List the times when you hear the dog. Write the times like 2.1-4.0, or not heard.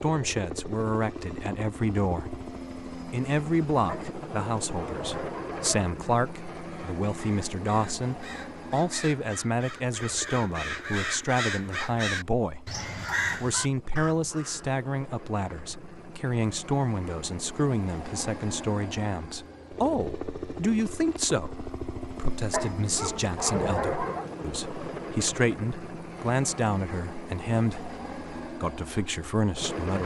3.9-5.8, 22.5-24.2.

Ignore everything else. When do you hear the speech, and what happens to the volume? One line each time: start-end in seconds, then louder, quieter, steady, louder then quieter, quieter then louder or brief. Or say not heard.
0.0-30.0 steady.